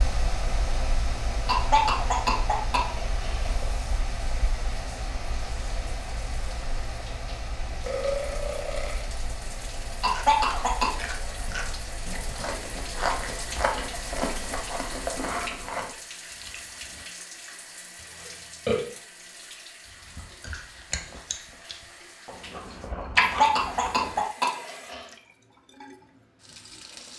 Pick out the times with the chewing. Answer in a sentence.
You can hear the chewing from 10.0 to 17.1 s and from 20.1 to 24.2 s.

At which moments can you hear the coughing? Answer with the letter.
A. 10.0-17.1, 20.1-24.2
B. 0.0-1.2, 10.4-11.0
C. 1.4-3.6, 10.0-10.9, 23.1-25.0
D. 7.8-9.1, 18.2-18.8
C.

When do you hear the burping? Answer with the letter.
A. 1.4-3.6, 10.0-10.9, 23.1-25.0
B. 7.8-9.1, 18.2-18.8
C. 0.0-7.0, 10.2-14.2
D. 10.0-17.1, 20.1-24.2
B.